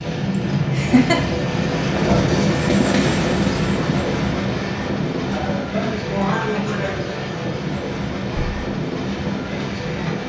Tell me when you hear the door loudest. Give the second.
2 s.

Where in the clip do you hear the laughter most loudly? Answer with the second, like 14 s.
1 s.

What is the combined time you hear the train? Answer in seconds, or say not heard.
10 s.